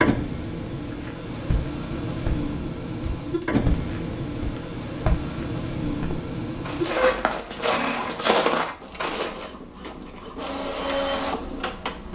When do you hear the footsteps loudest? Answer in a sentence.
The volume of the footsteps peaks at 8 seconds.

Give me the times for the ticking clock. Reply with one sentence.
The ticking clock can't be heard in this clip.